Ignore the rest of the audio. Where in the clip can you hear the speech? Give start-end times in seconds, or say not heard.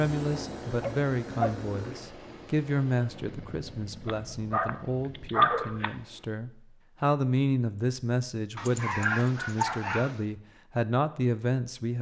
0.0-11.9.